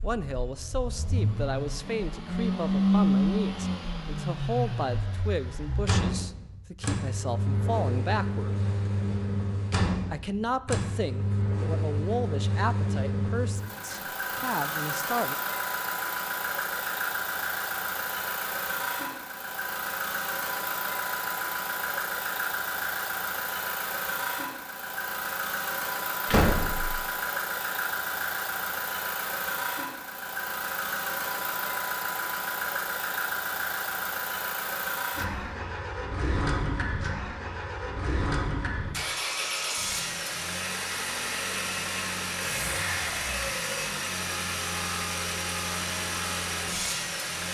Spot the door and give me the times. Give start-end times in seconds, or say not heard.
13.7-14.5, 26.2-27.0.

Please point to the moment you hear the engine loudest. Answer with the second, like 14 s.
3 s.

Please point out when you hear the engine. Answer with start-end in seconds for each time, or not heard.
0.0-47.4.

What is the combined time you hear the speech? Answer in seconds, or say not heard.
14 s.